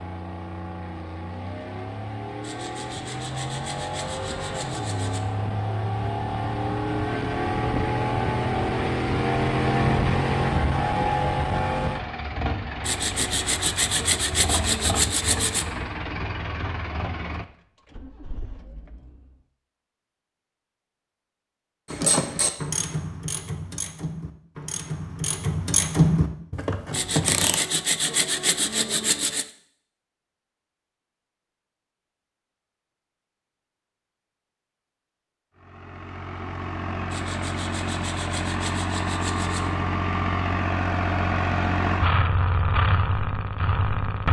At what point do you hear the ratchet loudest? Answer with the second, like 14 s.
26 s.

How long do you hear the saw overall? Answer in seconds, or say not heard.
11 s.